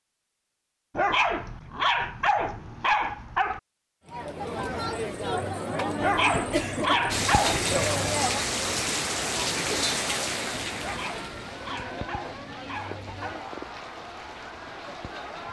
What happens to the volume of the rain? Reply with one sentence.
The loudness of the rain goes down.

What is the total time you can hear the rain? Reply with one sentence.
You can hear the rain for 8 seconds altogether.